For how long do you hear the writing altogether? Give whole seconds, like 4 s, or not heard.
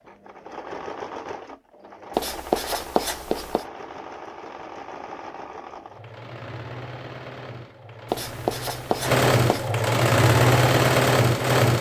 3 s.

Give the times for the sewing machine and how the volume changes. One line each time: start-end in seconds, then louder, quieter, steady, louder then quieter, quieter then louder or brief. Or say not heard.
0.0-11.7 louder.